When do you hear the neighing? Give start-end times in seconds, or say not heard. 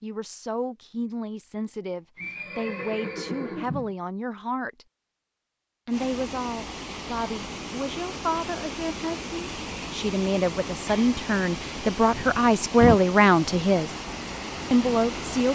2.1-4.0, 12.1-13.0.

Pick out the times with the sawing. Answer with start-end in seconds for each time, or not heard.
not heard.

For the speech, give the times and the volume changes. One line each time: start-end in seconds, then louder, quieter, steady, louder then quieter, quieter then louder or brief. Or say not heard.
0.0-4.8 steady
5.8-13.9 louder
14.7-15.5 brief.